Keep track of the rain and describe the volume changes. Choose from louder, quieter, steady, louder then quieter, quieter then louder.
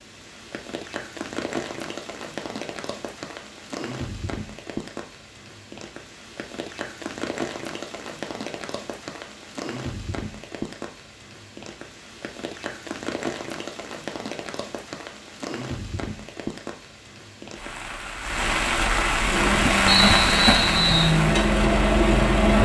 louder.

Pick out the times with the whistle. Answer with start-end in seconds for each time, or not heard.
19.9-21.1.